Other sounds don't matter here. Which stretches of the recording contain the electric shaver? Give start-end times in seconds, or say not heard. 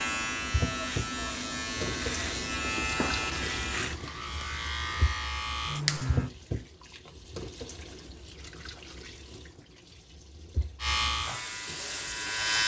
0.0-6.3, 10.8-12.6.